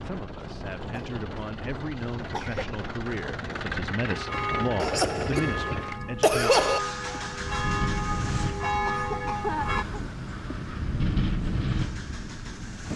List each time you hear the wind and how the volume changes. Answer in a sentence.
You can hear the wind from 0.0 to 12.9 s, getting louder.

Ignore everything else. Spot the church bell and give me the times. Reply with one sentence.
You can hear the church bell from 4.1 to 9.8 s.